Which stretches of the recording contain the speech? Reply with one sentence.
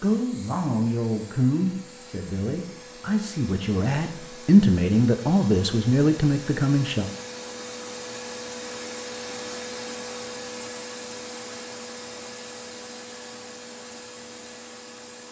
You can hear the speech from 0.0 to 7.0 s.